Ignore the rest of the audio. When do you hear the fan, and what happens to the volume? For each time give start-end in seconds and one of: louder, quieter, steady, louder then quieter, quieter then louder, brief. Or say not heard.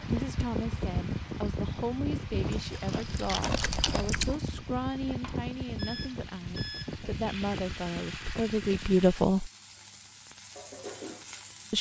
0.0-9.1 quieter.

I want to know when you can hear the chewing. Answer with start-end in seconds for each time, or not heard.
2.3-4.4.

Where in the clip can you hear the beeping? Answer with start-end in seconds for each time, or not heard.
5.8-6.9.